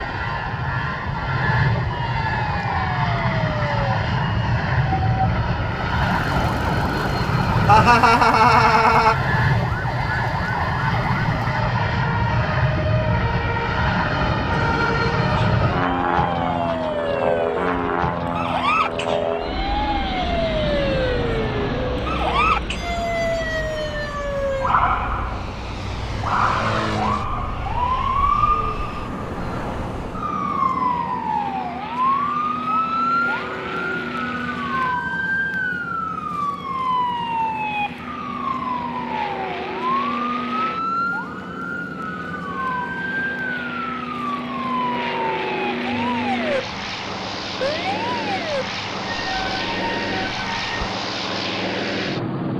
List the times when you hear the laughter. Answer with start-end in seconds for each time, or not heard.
7.7-9.2.